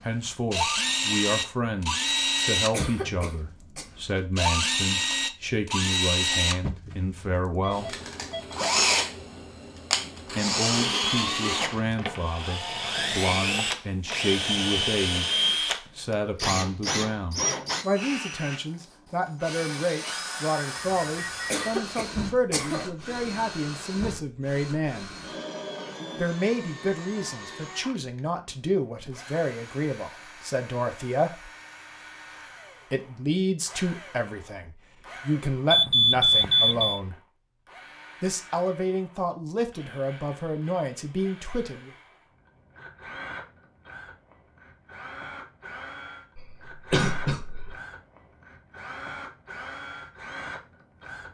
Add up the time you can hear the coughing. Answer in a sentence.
You can hear the coughing for 4 seconds altogether.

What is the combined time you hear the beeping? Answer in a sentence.
You can hear the beeping for 3 seconds altogether.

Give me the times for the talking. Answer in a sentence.
The talking can be heard from 0.0 to 8.0 s, from 10.3 to 25.1 s, from 26.1 to 31.5 s, from 32.9 to 37.1 s and from 38.2 to 41.9 s.